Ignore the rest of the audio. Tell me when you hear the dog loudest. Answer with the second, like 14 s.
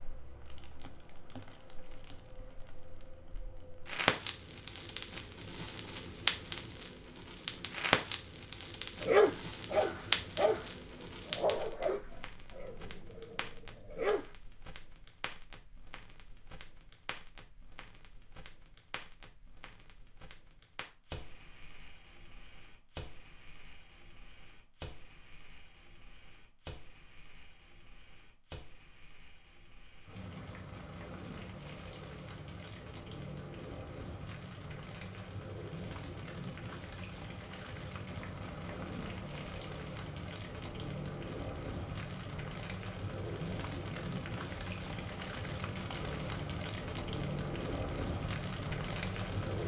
9 s.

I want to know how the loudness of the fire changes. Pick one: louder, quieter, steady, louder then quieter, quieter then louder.
quieter then louder.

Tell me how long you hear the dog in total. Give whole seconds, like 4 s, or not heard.
5 s.